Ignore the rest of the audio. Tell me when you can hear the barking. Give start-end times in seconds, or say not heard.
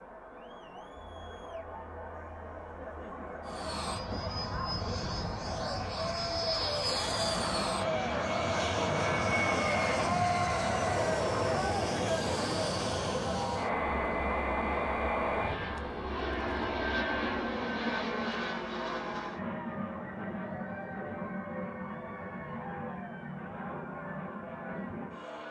not heard.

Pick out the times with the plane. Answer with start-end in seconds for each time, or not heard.
3.5-25.4.